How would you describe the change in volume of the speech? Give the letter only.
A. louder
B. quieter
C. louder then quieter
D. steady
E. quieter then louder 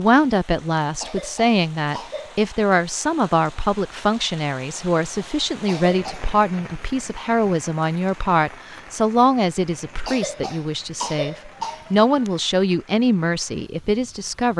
D.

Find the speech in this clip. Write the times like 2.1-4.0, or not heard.
0.0-14.5.